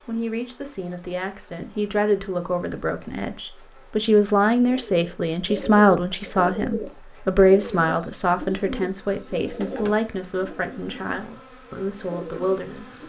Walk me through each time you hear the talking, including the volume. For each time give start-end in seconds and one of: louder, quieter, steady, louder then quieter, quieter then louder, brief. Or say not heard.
0.1-13.0 louder then quieter.